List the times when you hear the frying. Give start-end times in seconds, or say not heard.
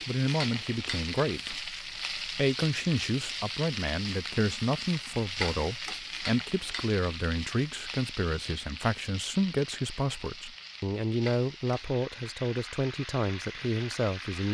0.0-14.4.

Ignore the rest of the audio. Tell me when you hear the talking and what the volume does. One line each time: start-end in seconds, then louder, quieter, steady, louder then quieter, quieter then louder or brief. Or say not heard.
0.1-14.4 steady.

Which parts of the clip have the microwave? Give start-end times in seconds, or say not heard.
not heard.